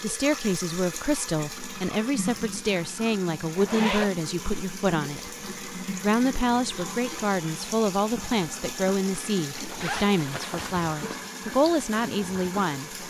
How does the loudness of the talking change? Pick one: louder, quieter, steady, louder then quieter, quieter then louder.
steady.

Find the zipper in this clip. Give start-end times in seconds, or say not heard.
3.5-4.1, 9.6-11.2.